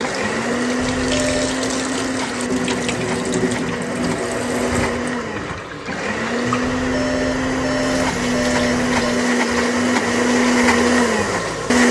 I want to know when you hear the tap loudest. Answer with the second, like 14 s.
3 s.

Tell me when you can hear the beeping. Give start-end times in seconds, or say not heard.
0.8-1.6, 6.6-9.3.